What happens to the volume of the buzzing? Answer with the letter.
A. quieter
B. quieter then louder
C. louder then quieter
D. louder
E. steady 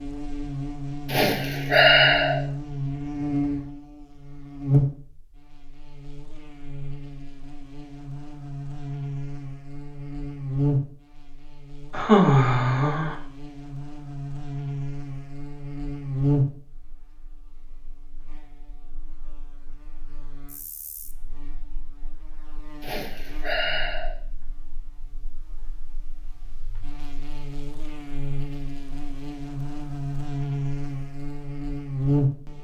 B.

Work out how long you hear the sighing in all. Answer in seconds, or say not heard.
4 s.